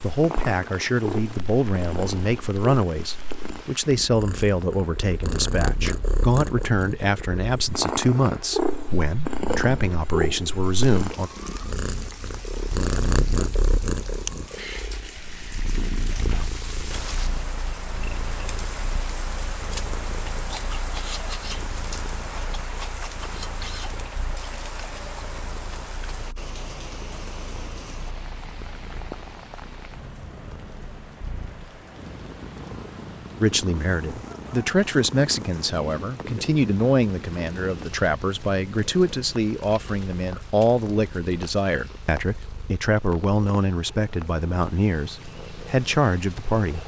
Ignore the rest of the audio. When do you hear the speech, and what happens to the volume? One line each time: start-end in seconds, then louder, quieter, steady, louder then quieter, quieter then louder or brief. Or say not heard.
0.0-11.3 steady
33.4-46.8 steady.